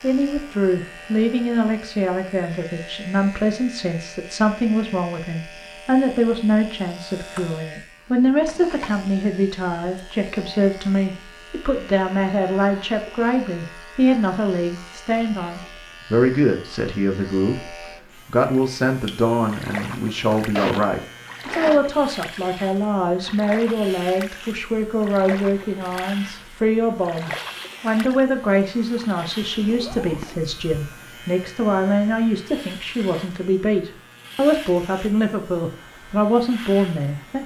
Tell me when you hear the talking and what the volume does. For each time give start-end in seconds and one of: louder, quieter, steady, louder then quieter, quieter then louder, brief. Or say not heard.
0.0-37.4 steady.